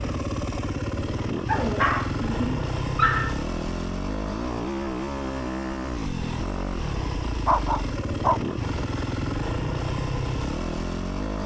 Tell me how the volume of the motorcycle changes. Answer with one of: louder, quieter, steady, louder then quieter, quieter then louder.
steady.